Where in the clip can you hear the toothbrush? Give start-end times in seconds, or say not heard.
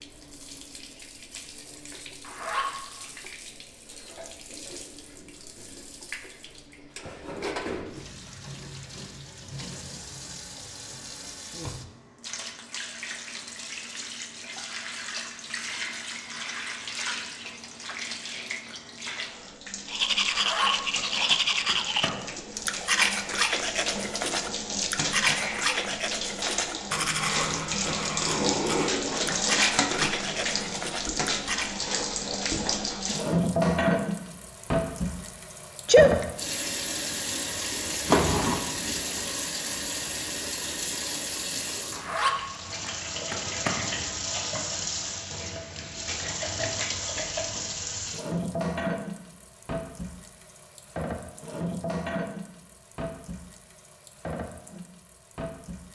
19.9-31.8.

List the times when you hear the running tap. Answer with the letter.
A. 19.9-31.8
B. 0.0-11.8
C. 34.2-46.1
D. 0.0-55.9
D.